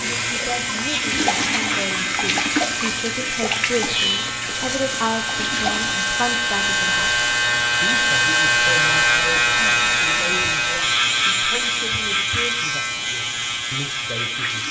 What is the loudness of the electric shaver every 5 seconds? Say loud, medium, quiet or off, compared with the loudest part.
medium, loud, loud.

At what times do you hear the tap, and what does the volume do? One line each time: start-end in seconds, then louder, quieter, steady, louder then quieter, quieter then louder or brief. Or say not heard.
0.0-14.6 quieter.